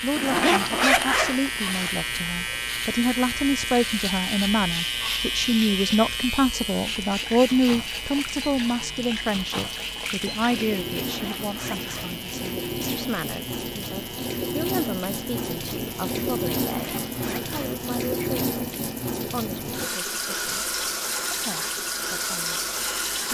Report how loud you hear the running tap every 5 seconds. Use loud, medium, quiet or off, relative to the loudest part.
quiet, medium, loud, loud, loud.